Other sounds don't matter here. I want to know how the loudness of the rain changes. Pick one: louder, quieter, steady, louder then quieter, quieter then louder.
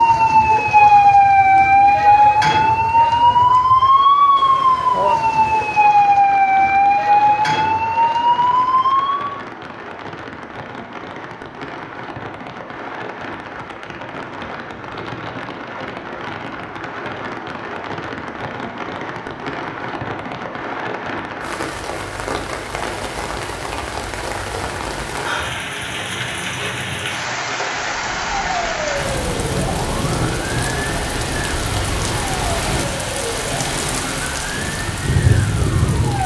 louder.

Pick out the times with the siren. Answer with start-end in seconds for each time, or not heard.
0.0-9.4, 27.8-36.2.